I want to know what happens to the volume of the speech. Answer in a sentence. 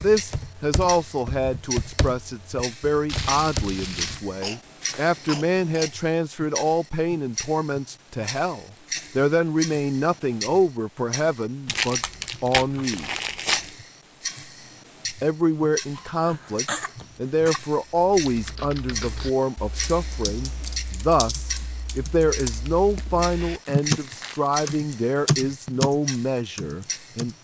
The loudness of the speech stays about the same.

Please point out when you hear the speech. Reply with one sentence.
You can hear the speech from 0.0 to 13.1 s and from 15.2 to 27.3 s.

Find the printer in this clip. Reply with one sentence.
You can't hear the printer here.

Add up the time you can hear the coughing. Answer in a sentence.
You can hear the coughing for 3 seconds altogether.